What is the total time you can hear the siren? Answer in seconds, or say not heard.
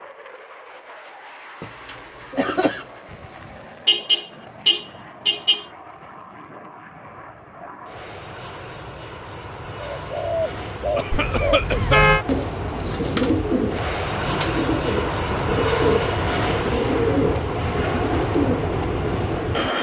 not heard.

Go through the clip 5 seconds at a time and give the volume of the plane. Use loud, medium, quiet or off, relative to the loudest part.
quiet, quiet, medium, loud.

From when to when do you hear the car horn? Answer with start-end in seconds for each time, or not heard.
3.9-5.7, 11.1-12.2.